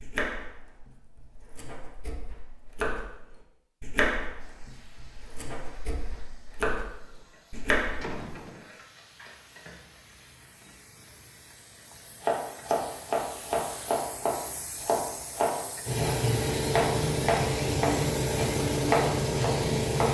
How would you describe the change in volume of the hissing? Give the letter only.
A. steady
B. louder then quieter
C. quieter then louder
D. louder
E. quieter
D.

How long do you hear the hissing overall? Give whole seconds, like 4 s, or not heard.
16 s.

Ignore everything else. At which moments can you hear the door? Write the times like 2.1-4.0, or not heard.
7.5-8.7.